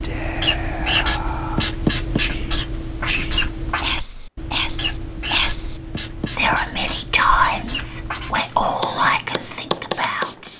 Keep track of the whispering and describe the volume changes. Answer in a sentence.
The loudness of the whispering goes up.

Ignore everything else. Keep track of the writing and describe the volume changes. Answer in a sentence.
The loudness of the writing goes down.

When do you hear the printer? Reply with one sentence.
You can't hear the printer here.